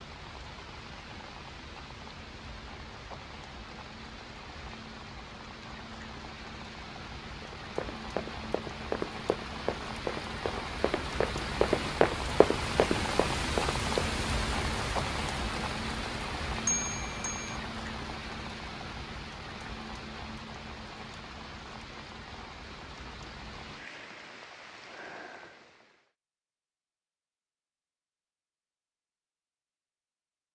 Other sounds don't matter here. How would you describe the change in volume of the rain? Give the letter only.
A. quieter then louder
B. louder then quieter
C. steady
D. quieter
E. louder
B.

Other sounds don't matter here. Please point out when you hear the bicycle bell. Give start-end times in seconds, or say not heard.
16.6-17.5.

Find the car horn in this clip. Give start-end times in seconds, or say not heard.
not heard.